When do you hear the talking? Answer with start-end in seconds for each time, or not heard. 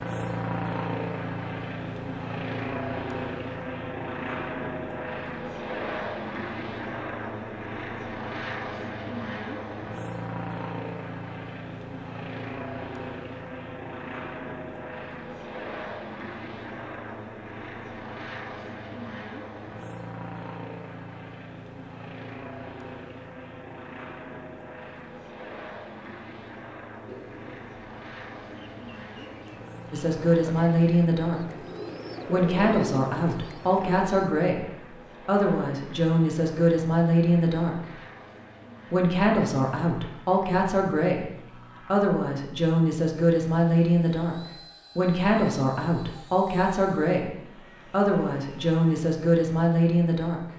29.9-31.4, 32.2-37.9, 38.9-44.4, 45.0-50.4.